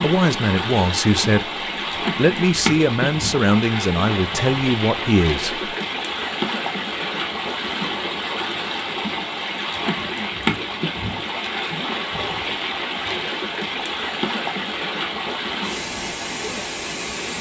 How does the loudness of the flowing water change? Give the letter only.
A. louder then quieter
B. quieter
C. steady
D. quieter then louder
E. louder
C.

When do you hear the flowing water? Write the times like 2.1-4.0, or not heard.
0.0-17.3.